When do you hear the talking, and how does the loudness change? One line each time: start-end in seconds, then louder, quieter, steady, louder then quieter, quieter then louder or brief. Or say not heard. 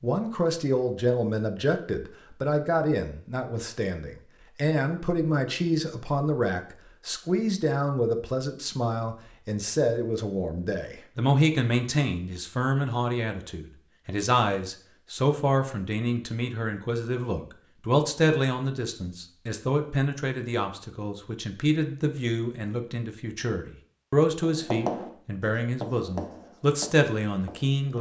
0.0-27.9 steady.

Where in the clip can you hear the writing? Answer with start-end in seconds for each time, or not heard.
24.4-27.9.